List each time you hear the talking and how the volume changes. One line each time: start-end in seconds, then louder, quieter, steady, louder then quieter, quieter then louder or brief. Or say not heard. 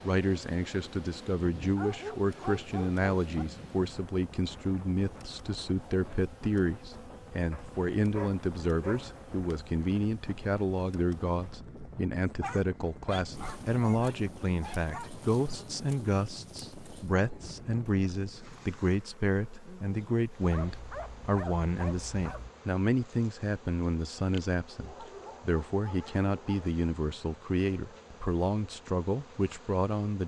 0.0-30.2 steady.